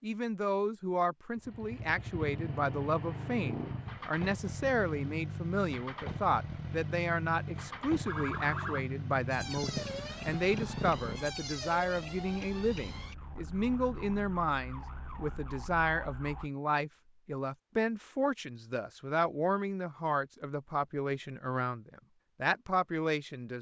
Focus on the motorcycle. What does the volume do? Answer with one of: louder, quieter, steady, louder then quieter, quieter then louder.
steady.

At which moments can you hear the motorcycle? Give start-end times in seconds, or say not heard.
1.4-11.3.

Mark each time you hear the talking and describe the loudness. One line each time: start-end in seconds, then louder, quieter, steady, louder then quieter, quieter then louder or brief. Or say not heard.
0.0-23.5 steady.